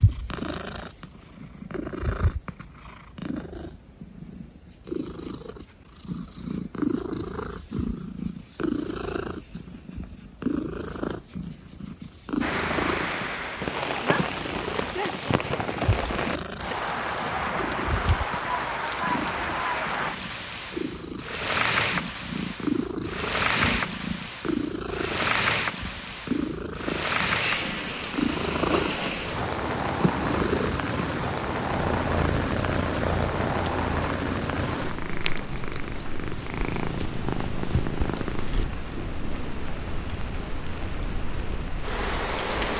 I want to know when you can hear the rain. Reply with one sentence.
You can hear the rain from 12.4 to 42.7 s.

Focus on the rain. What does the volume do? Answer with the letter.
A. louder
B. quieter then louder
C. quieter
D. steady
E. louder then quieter
C.